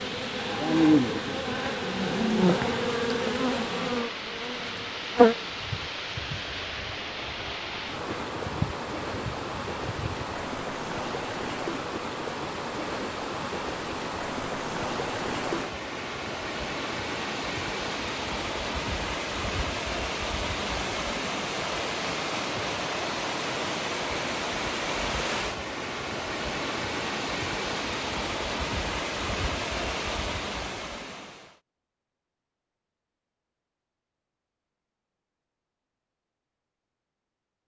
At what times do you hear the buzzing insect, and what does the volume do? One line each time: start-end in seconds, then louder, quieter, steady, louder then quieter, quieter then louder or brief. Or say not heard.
0.0-10.2 quieter then louder.